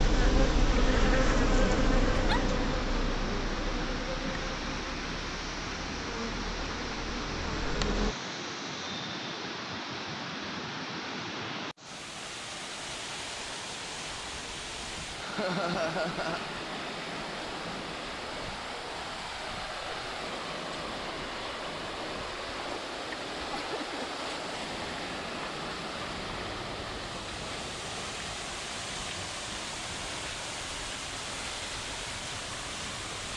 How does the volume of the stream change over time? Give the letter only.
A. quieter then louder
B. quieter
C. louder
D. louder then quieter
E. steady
E.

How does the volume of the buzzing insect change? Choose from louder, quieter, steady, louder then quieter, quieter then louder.
quieter.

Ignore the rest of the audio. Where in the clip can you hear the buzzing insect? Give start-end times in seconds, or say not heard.
0.0-8.2.